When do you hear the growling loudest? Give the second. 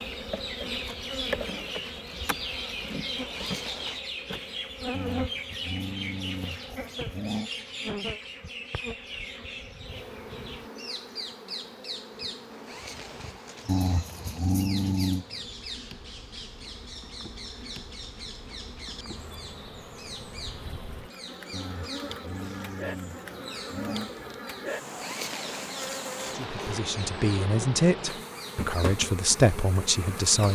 15 s.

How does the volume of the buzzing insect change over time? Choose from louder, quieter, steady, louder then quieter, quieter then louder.
quieter then louder.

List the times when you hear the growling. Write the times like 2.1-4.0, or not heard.
4.9-7.5, 13.7-15.2, 21.5-24.1.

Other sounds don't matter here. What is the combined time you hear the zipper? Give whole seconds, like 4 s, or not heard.
5 s.